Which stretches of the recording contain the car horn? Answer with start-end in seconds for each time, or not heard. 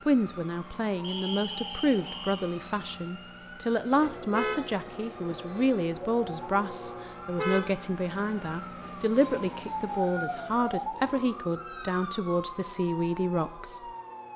4.3-5.4, 7.3-8.0.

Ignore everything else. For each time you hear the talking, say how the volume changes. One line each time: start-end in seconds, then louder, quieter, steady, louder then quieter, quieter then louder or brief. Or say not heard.
0.1-14.3 steady.